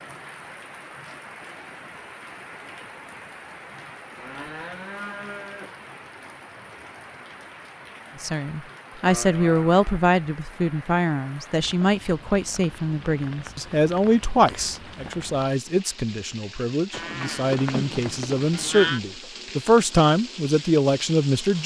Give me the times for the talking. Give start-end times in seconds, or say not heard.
8.2-21.6.